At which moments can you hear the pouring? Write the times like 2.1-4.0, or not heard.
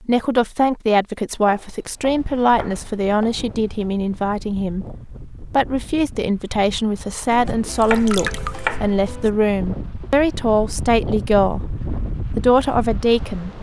7.8-8.6.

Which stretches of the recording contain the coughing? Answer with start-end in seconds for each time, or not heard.
not heard.